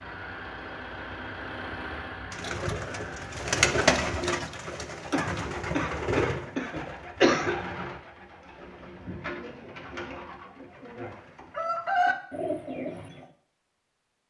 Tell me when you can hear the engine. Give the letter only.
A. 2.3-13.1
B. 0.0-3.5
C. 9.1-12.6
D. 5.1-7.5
B.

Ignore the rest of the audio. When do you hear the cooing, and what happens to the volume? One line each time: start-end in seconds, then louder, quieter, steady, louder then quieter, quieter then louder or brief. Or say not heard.
2.3-13.1 quieter then louder.